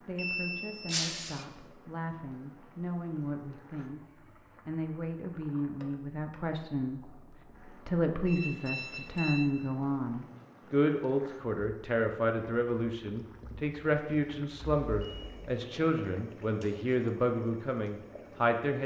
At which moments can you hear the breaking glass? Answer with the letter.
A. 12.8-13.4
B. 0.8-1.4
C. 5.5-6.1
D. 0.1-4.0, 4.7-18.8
B.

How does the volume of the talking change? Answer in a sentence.
The loudness of the talking goes up.